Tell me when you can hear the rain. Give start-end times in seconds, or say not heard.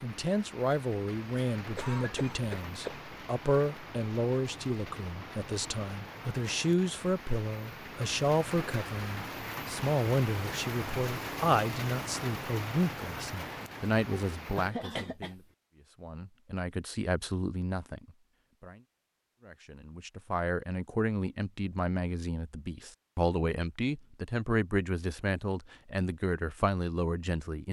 0.0-14.8.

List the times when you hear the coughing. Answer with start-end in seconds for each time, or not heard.
1.8-3.0, 14.3-15.4.